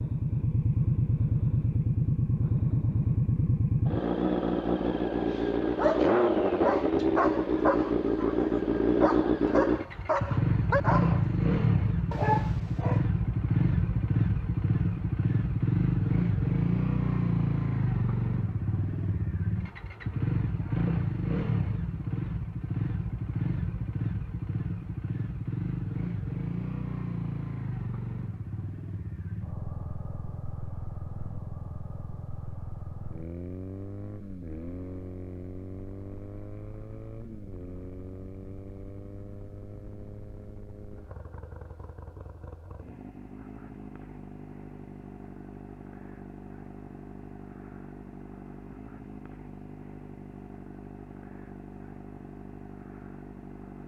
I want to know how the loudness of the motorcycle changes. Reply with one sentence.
The volume of the motorcycle goes down.